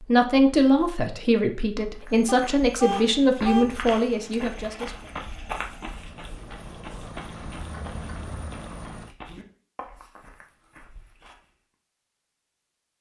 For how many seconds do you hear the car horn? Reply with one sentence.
You can hear the car horn for 2 seconds altogether.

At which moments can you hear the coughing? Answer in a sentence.
The coughing can't be heard in this clip.